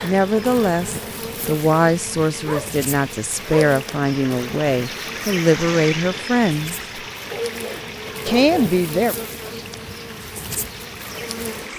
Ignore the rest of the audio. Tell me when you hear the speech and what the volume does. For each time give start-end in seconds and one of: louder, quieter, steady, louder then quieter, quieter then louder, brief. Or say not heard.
0.0-6.8 steady
8.2-9.2 brief.